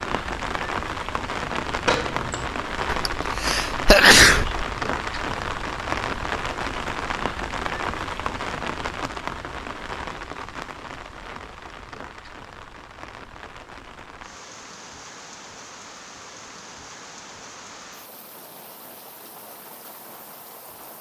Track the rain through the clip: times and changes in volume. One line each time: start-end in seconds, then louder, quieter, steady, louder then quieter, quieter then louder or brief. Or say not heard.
0.0-20.9 quieter.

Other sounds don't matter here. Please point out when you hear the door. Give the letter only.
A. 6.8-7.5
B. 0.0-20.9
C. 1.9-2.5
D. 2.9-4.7
C.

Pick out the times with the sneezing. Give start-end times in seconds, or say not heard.
2.9-4.7.